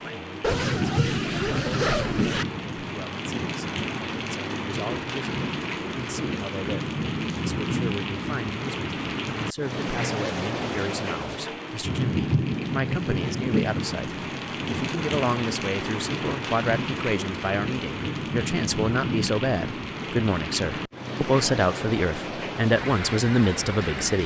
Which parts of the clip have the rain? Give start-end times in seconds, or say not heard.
0.0-24.2.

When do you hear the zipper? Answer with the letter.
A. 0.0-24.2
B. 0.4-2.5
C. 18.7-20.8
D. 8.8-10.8
B.